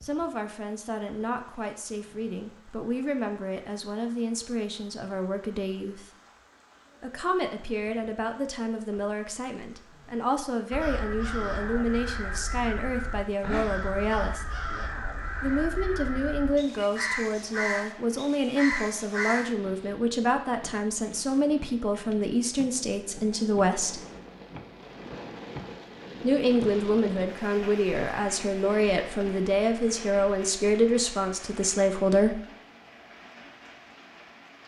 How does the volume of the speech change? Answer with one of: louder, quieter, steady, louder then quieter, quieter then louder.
louder.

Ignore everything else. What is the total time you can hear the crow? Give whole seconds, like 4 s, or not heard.
9 s.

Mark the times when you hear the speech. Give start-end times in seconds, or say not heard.
0.0-6.1, 7.0-14.4, 15.4-24.0, 26.2-32.4.